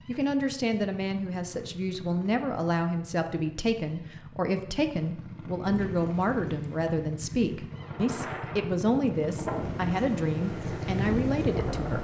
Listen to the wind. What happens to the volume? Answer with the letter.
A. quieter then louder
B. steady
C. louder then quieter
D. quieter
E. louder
E.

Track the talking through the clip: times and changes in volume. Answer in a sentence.
The talking can be heard from 0.1 to 12.0 s, at a steady volume.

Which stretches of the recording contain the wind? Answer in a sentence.
The wind can be heard from 5.6 to 12.0 s.